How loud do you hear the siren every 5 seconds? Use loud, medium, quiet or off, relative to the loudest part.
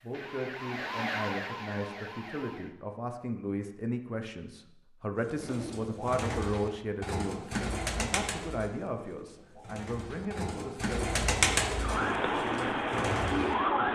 medium, off, loud.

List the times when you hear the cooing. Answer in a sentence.
The cooing can be heard from 5.4 to 13.8 s.